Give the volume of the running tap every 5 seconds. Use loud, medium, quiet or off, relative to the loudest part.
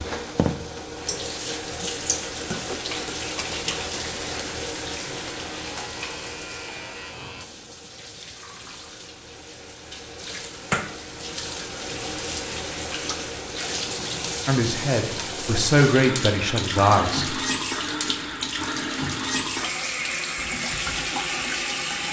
loud, medium, loud, loud, loud.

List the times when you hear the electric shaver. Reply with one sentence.
The electric shaver can be heard from 5.0 to 7.5 s.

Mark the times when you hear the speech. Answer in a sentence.
The speech can be heard from 14.4 to 17.4 s.